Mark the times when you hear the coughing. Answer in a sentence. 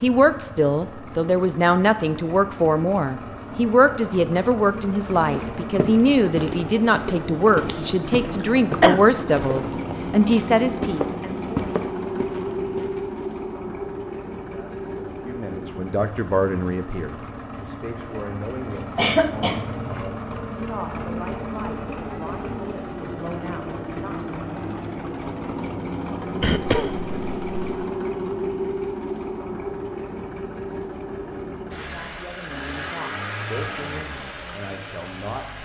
The coughing can be heard from 8.4 to 9.0 s, from 18.6 to 20.1 s and from 26.4 to 27.9 s.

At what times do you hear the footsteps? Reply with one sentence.
The footsteps can be heard from 5.2 to 13.1 s.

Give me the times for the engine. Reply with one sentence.
You can hear the engine from 0.0 to 35.6 s.